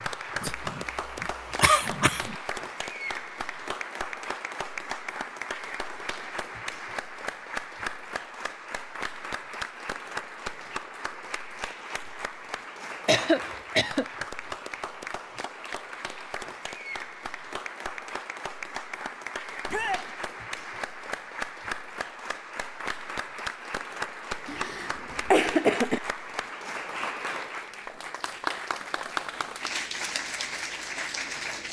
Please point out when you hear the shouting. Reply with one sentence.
You can hear the shouting from 19.6 to 20.1 s.